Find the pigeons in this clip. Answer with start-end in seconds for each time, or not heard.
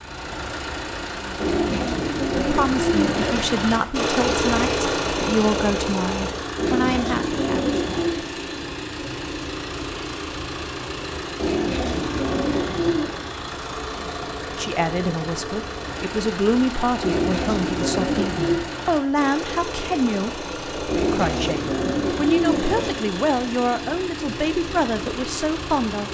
1.4-3.4, 6.5-8.2, 11.3-13.1, 17.0-18.6, 20.9-22.9.